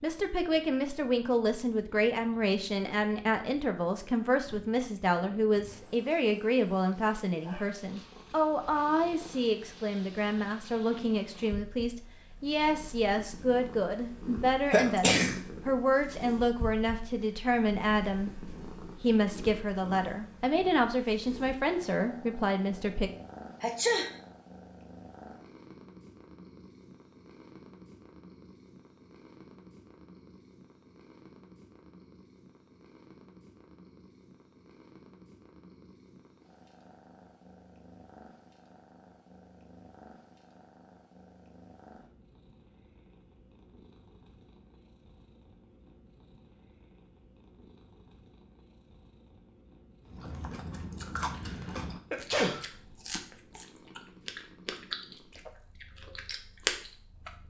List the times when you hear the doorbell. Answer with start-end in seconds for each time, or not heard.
not heard.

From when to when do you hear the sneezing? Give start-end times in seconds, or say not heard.
14.7-15.4, 23.6-24.1, 51.4-52.6.